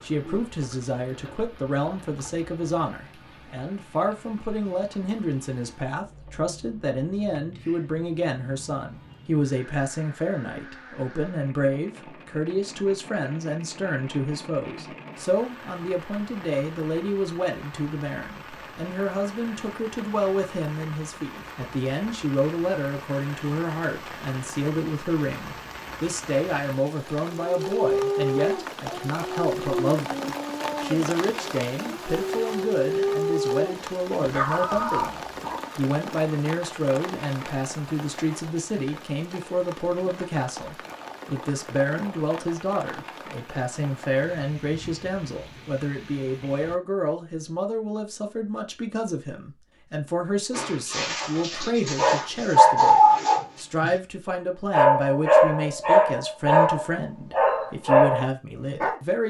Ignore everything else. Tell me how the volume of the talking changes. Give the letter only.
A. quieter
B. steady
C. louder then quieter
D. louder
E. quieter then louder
B.